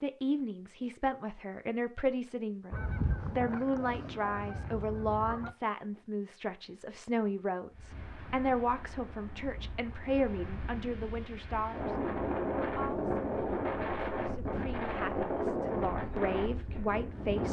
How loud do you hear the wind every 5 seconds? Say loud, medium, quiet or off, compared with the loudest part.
off, quiet, loud, loud.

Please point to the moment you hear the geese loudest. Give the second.
3 s.